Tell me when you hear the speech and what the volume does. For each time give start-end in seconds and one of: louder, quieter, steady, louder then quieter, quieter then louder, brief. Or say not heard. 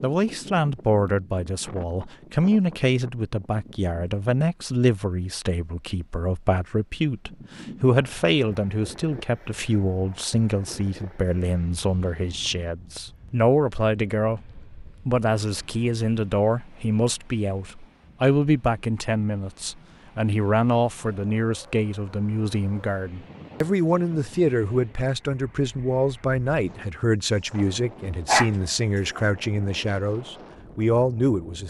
0.0-31.6 steady.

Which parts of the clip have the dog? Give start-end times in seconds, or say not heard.
28.2-29.2.